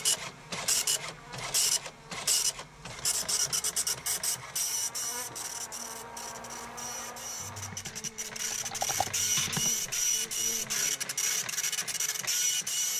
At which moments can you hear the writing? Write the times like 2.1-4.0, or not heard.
not heard.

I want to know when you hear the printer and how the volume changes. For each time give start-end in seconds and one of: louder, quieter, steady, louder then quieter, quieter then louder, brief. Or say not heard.
0.0-12.9 quieter then louder.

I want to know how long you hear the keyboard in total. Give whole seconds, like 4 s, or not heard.
2 s.